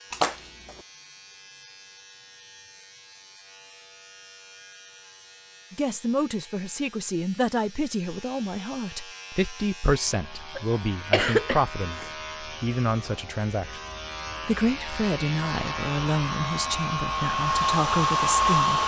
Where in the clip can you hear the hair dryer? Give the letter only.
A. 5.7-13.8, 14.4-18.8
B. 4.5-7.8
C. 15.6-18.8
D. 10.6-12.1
C.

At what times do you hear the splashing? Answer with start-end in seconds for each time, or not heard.
0.1-0.8.